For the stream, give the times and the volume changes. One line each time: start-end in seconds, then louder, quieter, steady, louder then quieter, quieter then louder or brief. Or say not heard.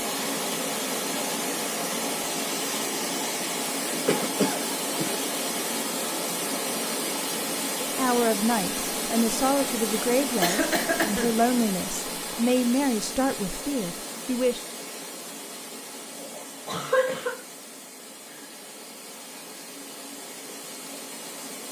0.0-21.6 quieter.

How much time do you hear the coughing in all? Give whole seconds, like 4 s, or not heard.
3 s.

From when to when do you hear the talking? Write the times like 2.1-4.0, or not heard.
7.8-14.7.